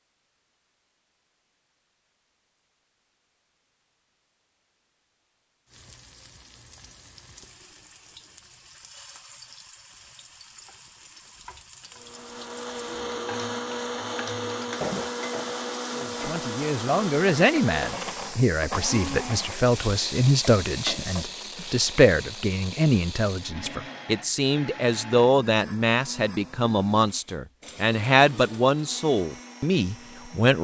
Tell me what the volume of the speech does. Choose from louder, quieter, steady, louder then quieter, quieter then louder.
steady.